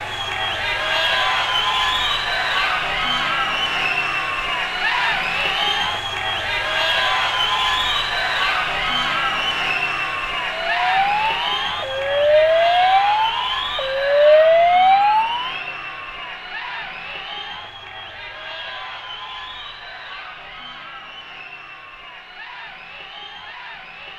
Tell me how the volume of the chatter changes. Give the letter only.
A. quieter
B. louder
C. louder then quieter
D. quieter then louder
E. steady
A.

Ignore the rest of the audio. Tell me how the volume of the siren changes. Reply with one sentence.
The volume of the siren goes up.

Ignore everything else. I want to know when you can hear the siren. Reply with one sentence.
The siren can be heard from 10.5 to 15.6 s.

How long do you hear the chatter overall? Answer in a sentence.
You can hear the chatter for 24 seconds altogether.